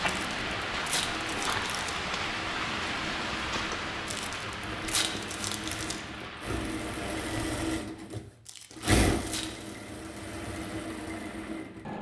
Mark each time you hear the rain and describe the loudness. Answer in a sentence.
You can hear the rain from 0.0 to 7.5 s, getting quieter.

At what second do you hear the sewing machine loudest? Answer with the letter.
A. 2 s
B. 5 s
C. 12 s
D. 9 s
D.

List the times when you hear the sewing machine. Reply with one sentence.
The sewing machine can be heard from 0.0 to 11.9 s.